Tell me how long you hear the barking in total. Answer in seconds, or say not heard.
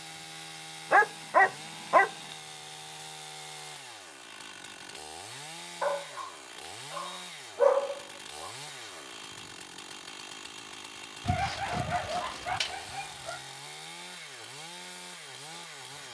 6 s.